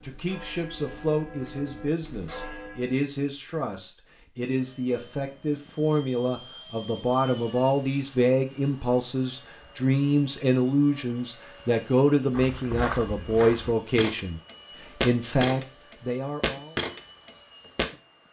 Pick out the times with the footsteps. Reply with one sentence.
The footsteps can be heard from 12.3 to 17.9 s.